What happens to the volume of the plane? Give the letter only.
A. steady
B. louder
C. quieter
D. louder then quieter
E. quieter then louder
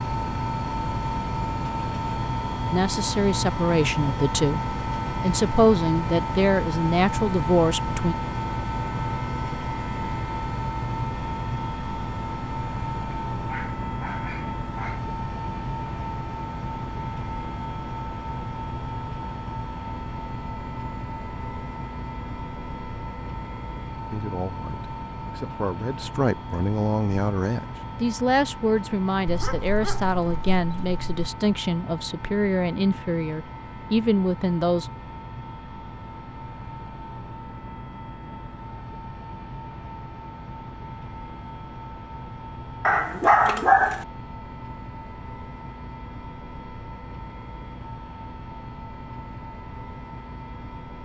C.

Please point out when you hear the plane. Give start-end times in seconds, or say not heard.
0.0-51.0.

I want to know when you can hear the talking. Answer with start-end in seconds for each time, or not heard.
2.7-8.2, 24.1-34.9.